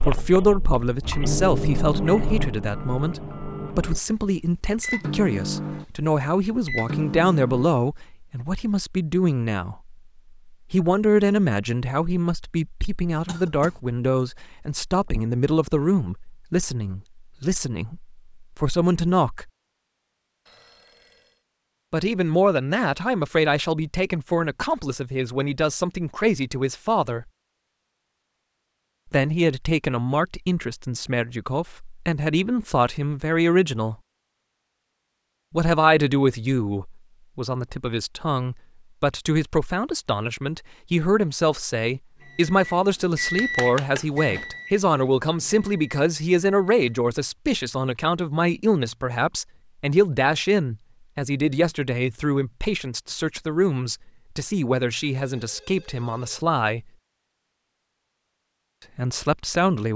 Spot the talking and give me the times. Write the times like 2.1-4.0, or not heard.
0.0-19.5, 21.9-27.2, 29.1-34.0, 35.5-56.9, 59.0-59.9.